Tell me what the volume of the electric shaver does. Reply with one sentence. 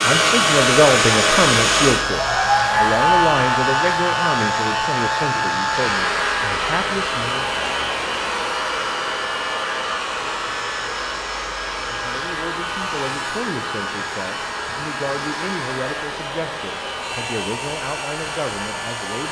The volume of the electric shaver goes down.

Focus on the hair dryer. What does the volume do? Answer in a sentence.
The loudness of the hair dryer goes down.